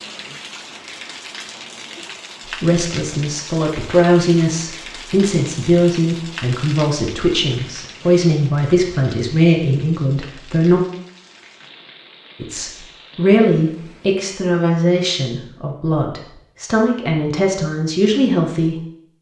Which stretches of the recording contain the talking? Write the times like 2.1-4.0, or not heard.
2.5-10.8, 12.4-18.8.